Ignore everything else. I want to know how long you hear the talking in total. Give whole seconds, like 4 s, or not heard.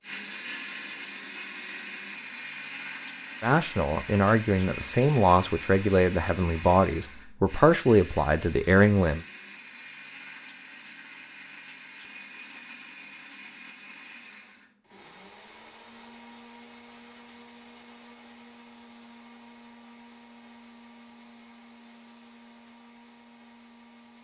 6 s.